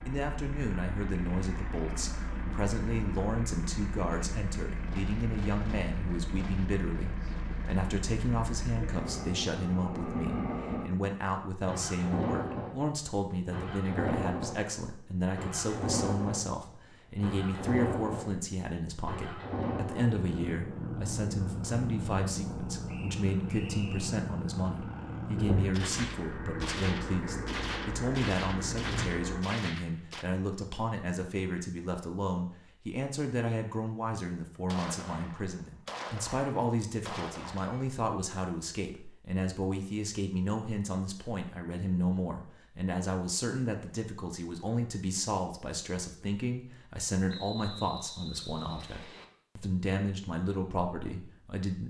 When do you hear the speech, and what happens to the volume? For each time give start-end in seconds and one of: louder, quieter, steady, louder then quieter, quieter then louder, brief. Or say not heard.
0.1-51.8 steady.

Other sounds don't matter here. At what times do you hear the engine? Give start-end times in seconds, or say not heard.
0.0-29.4.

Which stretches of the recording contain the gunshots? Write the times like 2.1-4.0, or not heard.
4.1-7.9, 25.7-30.2, 34.6-38.0.